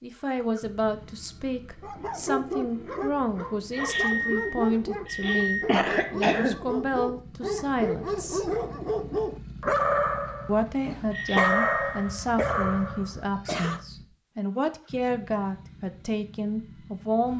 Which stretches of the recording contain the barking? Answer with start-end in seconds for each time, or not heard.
1.8-13.8.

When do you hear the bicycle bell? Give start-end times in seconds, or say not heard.
3.7-5.7, 11.1-12.1.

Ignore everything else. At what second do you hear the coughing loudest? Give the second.
6 s.